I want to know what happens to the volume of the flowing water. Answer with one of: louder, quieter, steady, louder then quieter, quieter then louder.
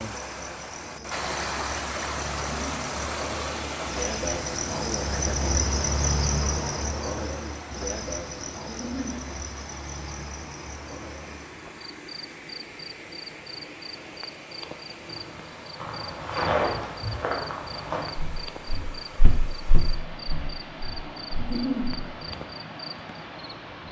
quieter.